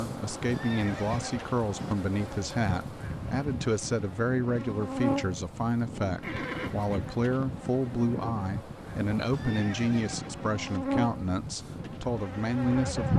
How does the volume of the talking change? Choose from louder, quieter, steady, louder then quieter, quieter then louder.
steady.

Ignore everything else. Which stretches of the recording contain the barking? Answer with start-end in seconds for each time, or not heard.
not heard.